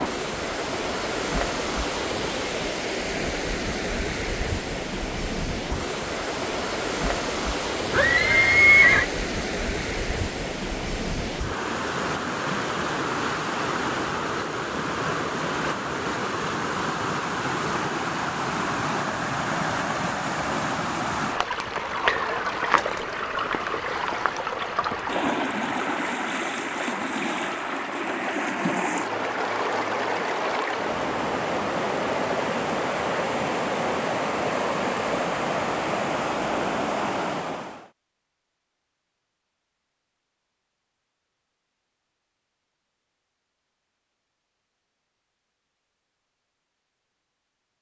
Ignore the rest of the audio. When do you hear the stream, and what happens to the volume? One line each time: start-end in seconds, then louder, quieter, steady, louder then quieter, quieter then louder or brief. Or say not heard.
0.0-37.9 steady.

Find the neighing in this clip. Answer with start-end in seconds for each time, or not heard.
7.9-9.1.